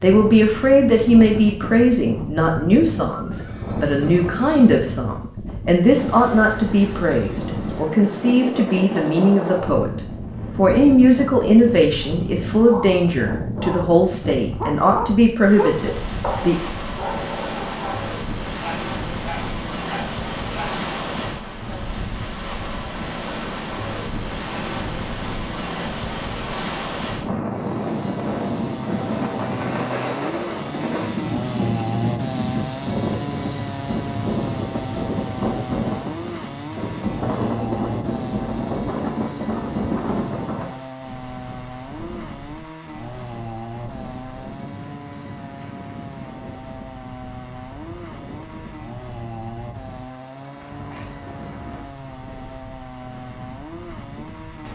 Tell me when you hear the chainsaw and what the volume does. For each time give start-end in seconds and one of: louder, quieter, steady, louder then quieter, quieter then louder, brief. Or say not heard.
27.4-54.7 quieter.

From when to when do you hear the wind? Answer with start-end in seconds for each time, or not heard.
0.0-54.7.